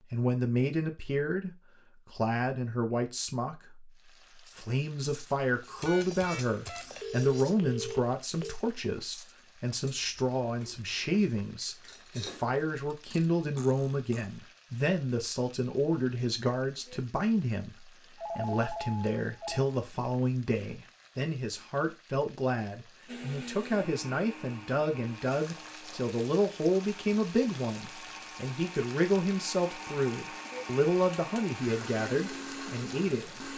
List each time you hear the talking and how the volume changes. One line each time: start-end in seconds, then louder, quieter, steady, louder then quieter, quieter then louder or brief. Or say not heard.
0.1-33.3 steady.